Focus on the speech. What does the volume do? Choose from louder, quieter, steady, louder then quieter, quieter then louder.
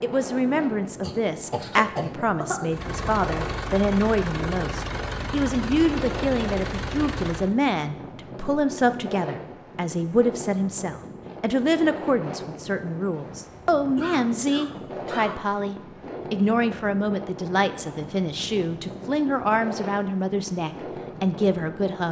steady.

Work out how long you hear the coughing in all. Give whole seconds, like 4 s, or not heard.
3 s.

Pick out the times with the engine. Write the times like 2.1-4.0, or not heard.
2.6-7.5.